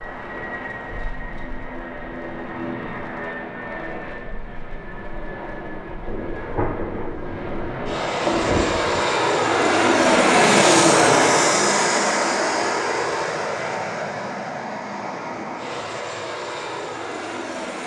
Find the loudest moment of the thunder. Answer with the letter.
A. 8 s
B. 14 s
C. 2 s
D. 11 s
A.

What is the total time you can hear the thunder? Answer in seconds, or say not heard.
3 s.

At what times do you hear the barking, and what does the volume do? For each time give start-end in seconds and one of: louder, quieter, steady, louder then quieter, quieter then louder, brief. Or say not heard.
not heard.